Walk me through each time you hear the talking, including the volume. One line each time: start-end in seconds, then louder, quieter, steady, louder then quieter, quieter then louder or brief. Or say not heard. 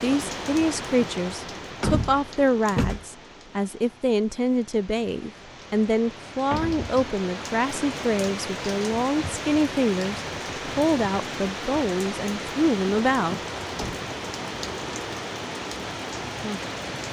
0.0-13.4 steady.